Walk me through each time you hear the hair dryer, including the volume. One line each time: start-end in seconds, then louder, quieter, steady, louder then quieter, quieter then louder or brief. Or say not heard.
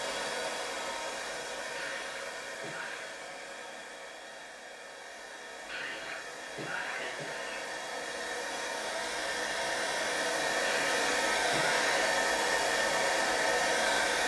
0.0-14.2 quieter then louder.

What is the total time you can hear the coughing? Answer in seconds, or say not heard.
5 s.